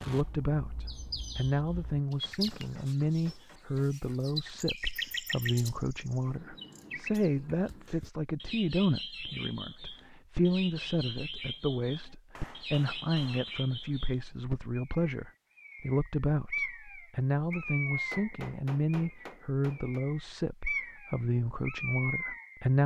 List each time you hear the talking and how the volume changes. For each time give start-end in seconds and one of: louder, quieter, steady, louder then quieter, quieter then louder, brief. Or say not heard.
0.0-22.8 steady.